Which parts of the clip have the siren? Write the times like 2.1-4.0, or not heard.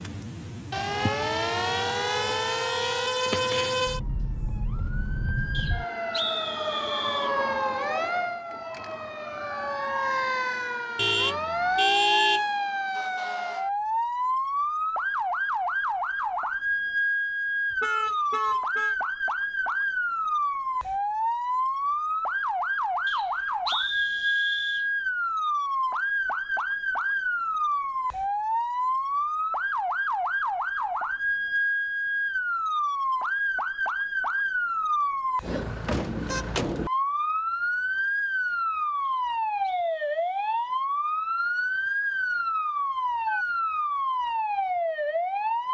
0.0-45.7.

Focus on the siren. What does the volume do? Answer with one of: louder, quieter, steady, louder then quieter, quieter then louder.
steady.